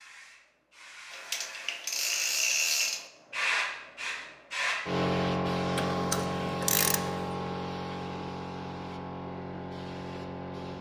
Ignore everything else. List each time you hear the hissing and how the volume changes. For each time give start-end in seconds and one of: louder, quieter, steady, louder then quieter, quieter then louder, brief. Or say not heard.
0.0-10.7 louder then quieter.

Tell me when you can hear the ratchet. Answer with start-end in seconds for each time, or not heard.
1.1-3.0, 5.8-7.2.